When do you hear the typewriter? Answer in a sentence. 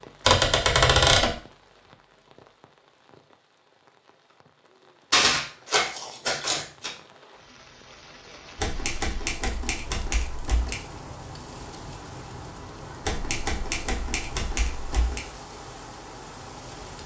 The typewriter can be heard from 0.2 to 1.3 s, from 5.1 to 6.9 s, from 8.6 to 10.8 s and from 13.0 to 15.2 s.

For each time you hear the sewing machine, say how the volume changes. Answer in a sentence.
You can't hear the sewing machine here.